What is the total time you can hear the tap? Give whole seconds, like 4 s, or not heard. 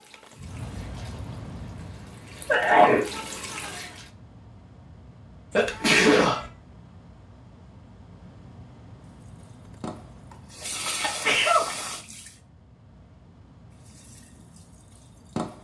9 s.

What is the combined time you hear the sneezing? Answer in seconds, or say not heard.
2 s.